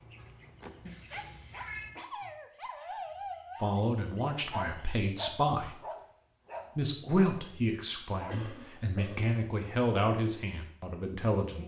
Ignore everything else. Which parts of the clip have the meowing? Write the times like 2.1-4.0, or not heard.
0.8-1.9.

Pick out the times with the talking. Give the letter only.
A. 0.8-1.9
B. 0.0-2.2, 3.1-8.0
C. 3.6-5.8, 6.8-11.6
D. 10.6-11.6
C.